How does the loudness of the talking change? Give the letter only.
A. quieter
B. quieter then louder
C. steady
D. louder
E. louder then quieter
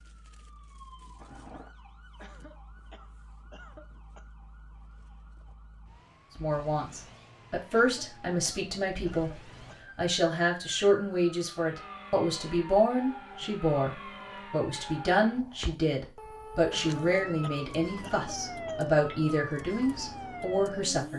C.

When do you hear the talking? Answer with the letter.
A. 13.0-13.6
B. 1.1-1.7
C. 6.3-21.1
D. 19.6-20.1
C.